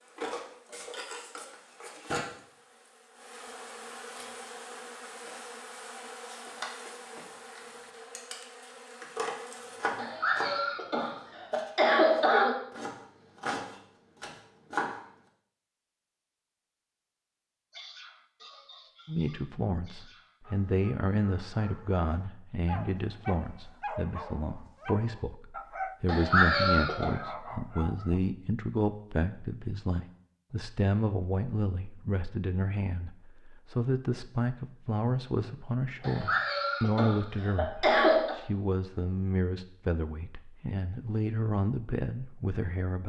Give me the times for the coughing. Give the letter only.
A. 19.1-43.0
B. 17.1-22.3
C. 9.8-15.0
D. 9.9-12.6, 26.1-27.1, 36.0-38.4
D.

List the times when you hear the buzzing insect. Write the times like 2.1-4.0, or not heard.
0.0-10.0.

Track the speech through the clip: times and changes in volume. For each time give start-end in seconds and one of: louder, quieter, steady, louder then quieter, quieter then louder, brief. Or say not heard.
19.1-43.0 steady.